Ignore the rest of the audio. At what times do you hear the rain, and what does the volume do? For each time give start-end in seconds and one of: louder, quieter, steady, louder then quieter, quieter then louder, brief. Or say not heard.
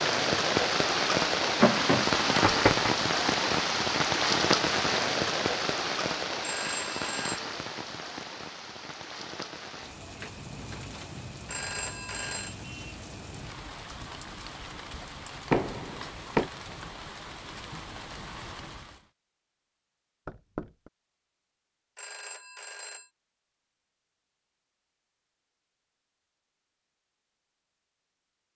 0.0-19.1 quieter.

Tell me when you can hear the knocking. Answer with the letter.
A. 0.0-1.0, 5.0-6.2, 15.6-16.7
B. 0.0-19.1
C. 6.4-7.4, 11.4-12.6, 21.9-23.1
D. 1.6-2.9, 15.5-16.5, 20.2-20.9
D.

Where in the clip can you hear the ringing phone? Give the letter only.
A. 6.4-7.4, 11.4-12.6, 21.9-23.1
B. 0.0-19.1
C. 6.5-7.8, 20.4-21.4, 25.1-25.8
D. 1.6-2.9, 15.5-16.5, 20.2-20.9
A.